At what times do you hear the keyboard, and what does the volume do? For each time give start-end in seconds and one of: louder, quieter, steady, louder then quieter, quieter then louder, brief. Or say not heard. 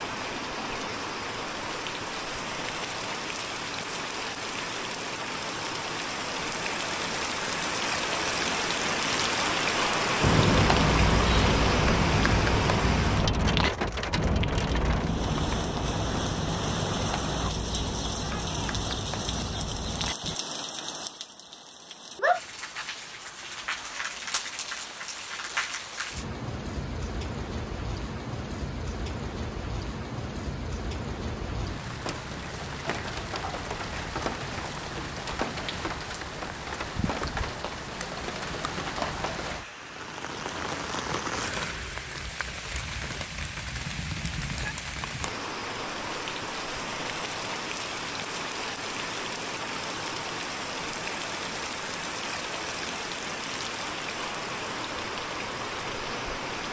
10.2-20.4 quieter.